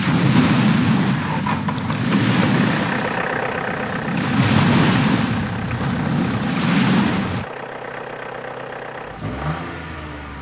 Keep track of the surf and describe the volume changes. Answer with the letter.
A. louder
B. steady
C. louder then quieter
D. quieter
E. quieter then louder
E.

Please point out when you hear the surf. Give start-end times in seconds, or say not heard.
0.0-7.5.